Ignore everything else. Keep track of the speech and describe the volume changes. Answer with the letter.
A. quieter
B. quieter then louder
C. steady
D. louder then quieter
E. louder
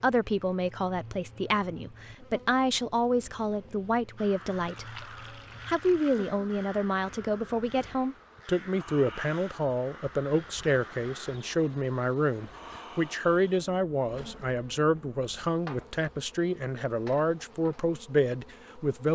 C.